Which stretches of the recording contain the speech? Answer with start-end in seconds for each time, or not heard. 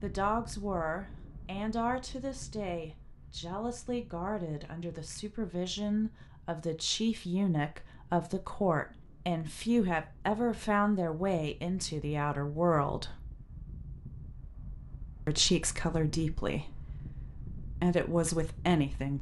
0.0-13.2, 15.2-19.1.